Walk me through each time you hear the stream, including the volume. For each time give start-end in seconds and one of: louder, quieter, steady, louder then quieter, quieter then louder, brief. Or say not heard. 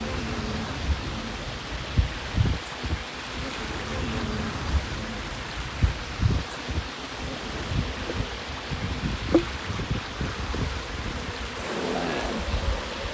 0.0-13.0 steady.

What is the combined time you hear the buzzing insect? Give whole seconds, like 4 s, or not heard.
13 s.